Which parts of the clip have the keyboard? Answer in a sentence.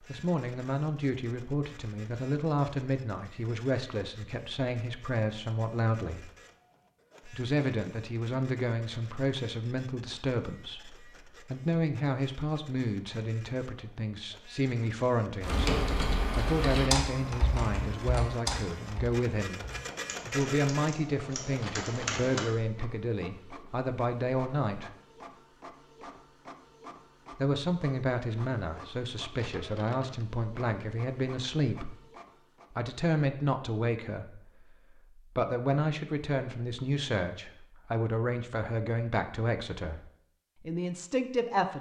You can hear the keyboard from 15.4 to 22.4 s.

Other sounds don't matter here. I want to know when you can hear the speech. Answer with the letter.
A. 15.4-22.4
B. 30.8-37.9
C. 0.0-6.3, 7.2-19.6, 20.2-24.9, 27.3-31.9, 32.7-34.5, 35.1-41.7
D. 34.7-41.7
C.